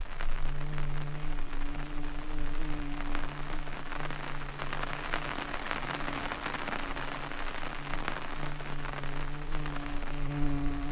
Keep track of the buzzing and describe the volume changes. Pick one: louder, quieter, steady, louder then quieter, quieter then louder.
quieter then louder.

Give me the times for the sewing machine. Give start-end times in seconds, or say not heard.
not heard.